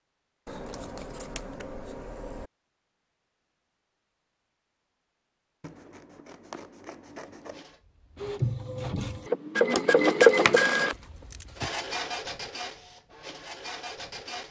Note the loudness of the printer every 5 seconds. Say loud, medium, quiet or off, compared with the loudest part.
off, loud, loud.